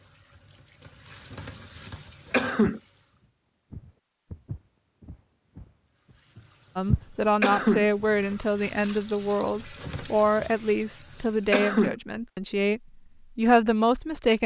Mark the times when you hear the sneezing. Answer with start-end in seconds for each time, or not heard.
2.3-2.8, 7.4-7.8, 11.5-11.9.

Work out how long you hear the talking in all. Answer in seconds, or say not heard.
8 s.